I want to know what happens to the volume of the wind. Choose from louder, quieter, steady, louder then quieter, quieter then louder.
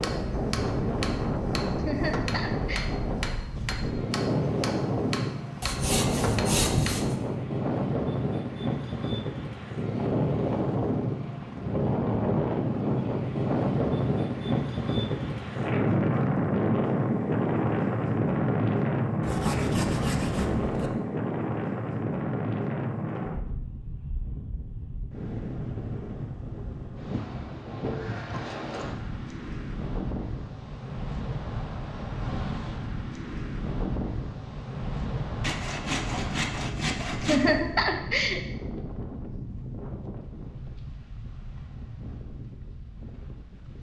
quieter.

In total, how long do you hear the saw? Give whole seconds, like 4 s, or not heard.
5 s.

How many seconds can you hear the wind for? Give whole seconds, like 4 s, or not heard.
44 s.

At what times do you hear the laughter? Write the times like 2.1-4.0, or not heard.
1.8-2.9, 37.2-38.4.